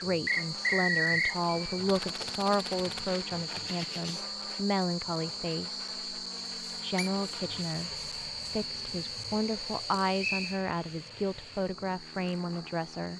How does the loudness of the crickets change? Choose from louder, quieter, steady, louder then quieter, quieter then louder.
quieter.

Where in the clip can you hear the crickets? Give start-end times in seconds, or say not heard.
0.0-13.1.